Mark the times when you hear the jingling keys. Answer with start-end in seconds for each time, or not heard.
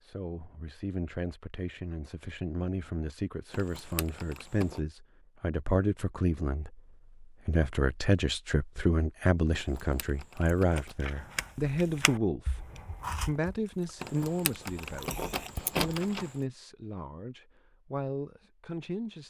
3.5-4.8, 9.6-10.9, 14.0-16.4.